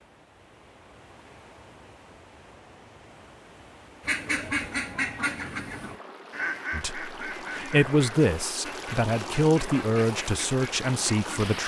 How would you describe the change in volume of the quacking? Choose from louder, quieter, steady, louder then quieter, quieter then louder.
quieter.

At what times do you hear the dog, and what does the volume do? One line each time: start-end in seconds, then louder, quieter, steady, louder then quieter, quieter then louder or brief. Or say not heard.
not heard.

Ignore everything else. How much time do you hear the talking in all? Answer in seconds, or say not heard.
5 s.